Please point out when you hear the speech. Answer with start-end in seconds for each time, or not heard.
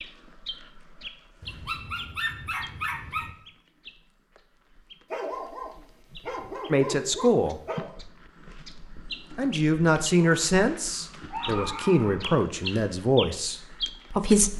6.7-7.6, 9.3-14.5.